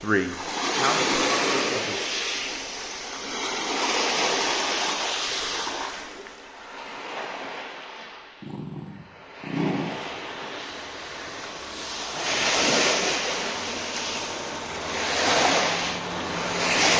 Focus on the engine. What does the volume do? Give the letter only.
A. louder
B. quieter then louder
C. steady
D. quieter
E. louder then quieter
A.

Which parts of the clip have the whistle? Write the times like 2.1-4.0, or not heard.
not heard.